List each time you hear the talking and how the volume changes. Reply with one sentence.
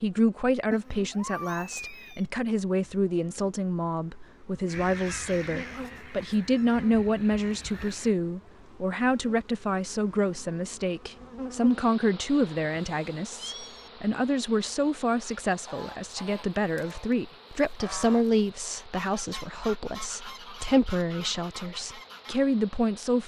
You can hear the talking from 0.0 to 23.2 s, at a steady volume.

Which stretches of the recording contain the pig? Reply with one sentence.
You can't hear the pig here.